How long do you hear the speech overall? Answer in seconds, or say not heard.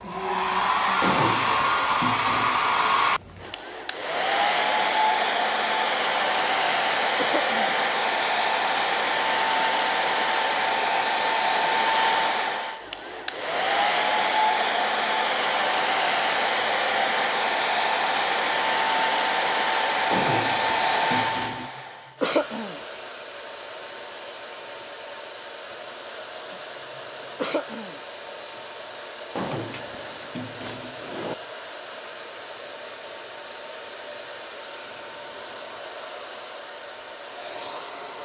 not heard.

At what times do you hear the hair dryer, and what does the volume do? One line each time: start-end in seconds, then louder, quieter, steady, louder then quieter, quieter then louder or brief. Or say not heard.
0.0-38.2 quieter.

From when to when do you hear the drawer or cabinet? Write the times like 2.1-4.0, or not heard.
1.0-2.6, 20.1-21.7, 29.4-31.4.